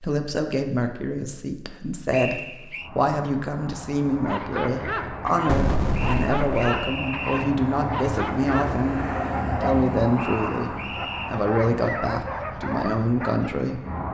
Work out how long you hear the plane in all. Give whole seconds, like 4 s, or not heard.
11 s.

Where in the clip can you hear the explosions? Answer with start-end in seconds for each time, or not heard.
5.5-6.7.